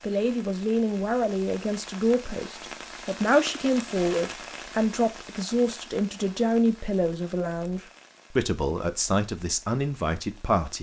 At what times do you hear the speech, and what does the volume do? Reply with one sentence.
The speech can be heard from 0.0 to 10.7 s, at a steady volume.